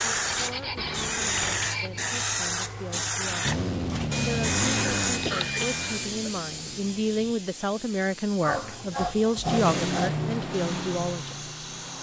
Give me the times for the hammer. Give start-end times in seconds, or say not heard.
not heard.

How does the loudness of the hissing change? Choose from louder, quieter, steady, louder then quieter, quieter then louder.
quieter.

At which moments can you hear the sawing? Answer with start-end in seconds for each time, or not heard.
0.2-2.0, 4.1-6.1, 8.4-10.2.